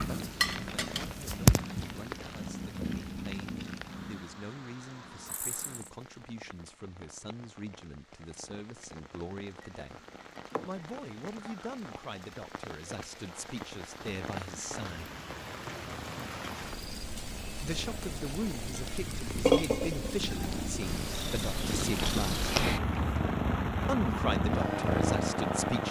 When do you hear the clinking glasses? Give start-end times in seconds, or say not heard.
0.4-1.1, 9.6-10.8, 19.4-20.2.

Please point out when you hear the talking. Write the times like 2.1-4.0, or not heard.
0.1-10.0, 10.7-15.2, 17.6-22.4, 23.9-25.8.